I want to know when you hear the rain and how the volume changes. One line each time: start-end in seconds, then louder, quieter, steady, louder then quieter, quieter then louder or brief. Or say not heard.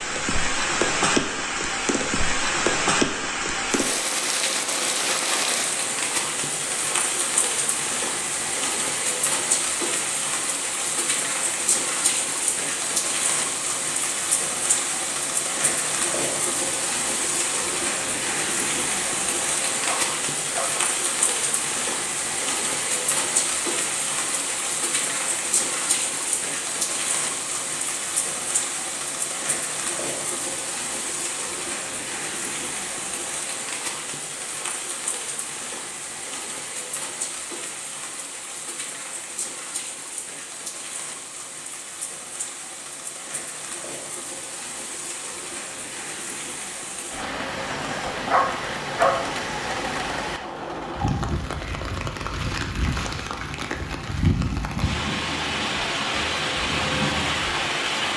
0.0-58.1 quieter then louder.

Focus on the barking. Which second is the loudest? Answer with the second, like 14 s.
49 s.